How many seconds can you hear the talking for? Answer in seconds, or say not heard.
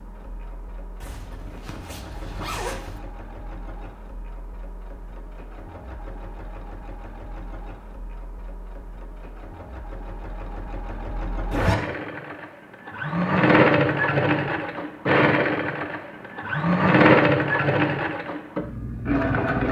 not heard.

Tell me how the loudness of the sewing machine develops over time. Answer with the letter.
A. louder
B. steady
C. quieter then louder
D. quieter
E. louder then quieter
A.